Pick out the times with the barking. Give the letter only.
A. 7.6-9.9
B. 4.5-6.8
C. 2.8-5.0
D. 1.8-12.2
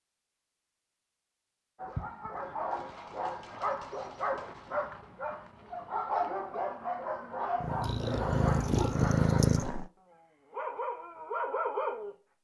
D.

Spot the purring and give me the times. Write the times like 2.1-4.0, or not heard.
7.6-9.9.